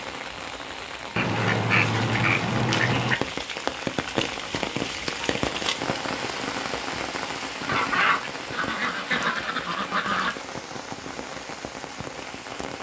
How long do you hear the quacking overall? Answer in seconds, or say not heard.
5 s.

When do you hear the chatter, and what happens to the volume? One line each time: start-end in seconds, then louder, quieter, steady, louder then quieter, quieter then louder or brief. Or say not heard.
not heard.